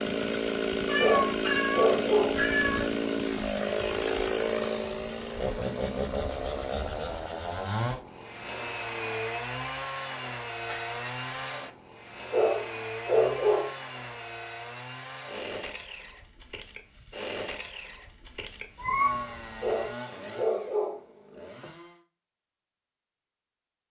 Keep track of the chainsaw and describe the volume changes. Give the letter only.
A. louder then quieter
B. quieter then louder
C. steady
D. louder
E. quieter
E.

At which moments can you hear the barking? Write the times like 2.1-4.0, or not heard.
0.9-2.4, 12.3-13.7, 19.6-21.0.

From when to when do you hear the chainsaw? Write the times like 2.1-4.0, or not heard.
0.0-22.0.